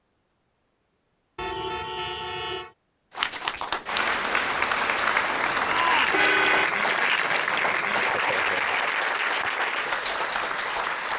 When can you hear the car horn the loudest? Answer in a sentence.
The volume of the car horn peaks at 6 seconds.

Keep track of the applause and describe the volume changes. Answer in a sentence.
The loudness of the applause stays about the same.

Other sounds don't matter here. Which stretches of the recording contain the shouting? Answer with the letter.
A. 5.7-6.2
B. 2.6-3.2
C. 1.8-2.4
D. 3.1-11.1
A.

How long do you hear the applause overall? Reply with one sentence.
The applause can be heard for 8 seconds in total.